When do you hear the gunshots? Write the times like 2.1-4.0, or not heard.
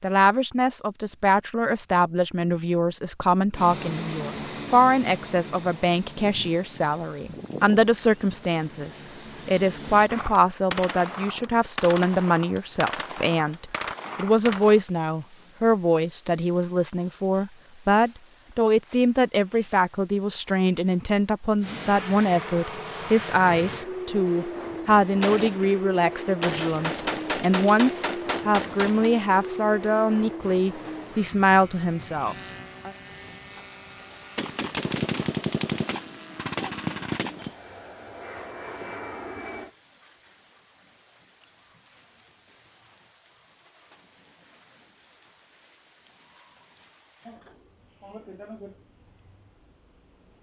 10.1-14.8, 25.2-29.1, 34.4-37.5.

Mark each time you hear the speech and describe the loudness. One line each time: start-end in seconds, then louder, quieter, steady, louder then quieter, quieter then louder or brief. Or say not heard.
0.0-32.9 steady.